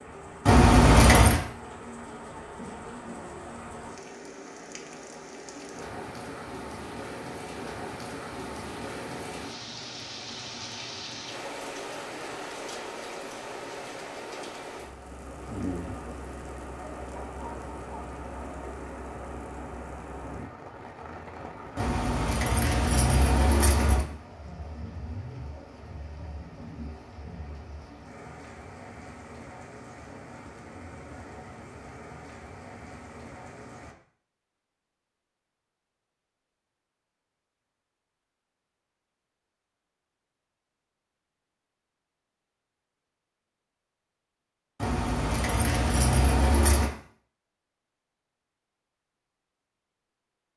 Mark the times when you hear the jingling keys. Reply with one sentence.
The jingling keys can be heard from 0.5 to 1.4 s, from 21.8 to 24.1 s and from 44.8 to 46.9 s.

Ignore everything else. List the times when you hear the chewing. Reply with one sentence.
You can't hear the chewing here.